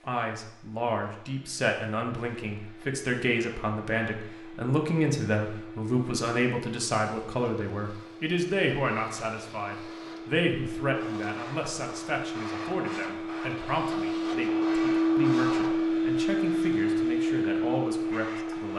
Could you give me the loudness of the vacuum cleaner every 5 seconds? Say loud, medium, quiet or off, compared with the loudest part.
quiet, quiet, medium, loud.